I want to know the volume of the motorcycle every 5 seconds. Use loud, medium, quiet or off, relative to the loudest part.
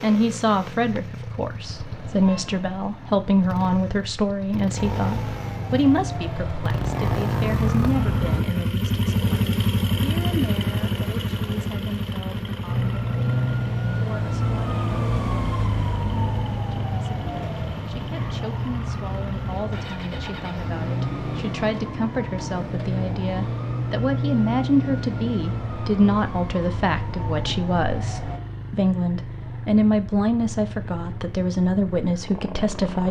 medium, loud, loud, medium, medium, medium, medium.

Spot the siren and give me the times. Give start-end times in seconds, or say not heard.
4.8-8.4, 12.7-28.4.